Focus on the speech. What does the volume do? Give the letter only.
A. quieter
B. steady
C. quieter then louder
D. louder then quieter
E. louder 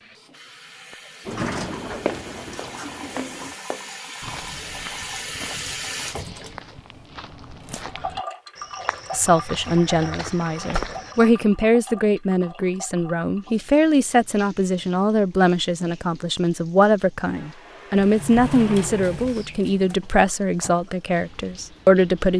B.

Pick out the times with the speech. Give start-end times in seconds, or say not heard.
9.1-22.3.